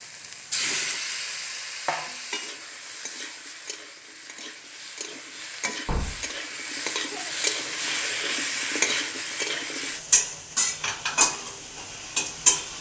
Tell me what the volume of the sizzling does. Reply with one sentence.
The loudness of the sizzling goes down, then up.